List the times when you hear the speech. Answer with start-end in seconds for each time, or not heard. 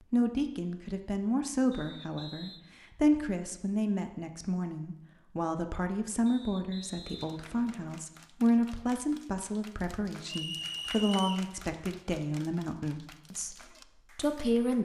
0.1-14.8.